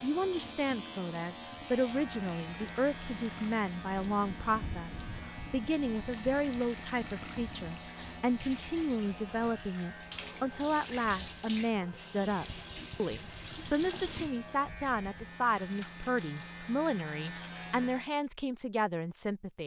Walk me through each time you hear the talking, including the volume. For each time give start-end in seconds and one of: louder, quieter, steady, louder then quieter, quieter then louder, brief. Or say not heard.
0.0-19.6 steady.